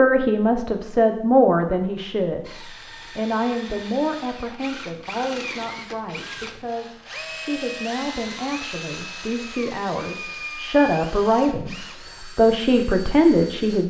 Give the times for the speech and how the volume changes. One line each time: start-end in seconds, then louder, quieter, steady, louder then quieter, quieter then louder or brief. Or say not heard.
0.0-13.8 quieter then louder.